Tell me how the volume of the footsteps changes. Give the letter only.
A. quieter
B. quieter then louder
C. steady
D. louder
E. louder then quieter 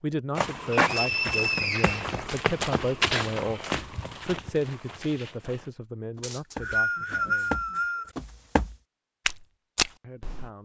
B.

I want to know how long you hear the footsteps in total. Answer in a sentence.
You can hear the footsteps for 10 seconds altogether.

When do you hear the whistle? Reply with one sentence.
You can hear the whistle from 0.7 to 2.2 s and from 6.2 to 8.1 s.